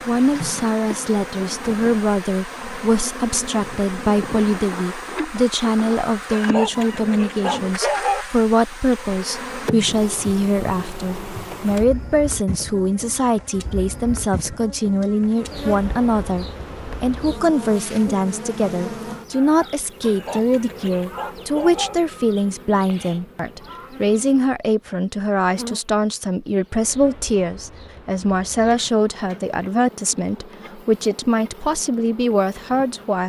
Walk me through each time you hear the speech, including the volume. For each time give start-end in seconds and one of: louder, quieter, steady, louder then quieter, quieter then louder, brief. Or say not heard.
0.1-33.2 steady.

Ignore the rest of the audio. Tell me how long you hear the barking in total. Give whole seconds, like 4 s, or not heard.
4 s.